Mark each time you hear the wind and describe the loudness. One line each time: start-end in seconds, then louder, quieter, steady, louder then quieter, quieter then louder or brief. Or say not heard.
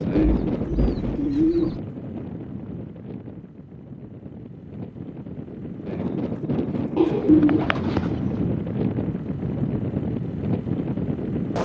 0.0-11.6 quieter then louder.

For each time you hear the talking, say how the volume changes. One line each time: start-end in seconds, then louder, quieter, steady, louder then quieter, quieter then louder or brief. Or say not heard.
not heard.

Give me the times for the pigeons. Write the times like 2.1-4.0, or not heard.
0.1-1.8, 7.0-8.4.